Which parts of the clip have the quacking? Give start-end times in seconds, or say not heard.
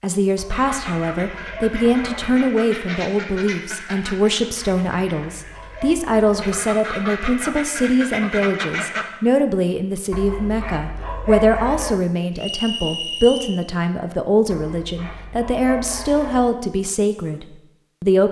0.5-9.1.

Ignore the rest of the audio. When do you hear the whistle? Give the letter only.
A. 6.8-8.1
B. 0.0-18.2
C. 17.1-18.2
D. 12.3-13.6
D.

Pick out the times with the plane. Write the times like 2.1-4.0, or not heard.
not heard.